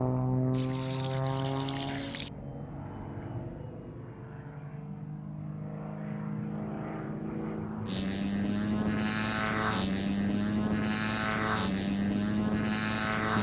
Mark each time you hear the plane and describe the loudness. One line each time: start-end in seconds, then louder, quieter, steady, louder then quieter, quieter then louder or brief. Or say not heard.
0.0-13.3 quieter then louder.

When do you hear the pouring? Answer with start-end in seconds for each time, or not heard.
0.5-2.3.